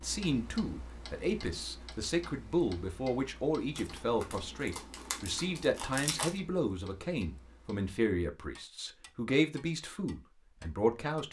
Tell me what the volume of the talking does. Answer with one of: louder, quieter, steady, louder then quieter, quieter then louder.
steady.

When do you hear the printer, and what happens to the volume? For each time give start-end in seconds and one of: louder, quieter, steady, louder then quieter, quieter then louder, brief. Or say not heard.
not heard.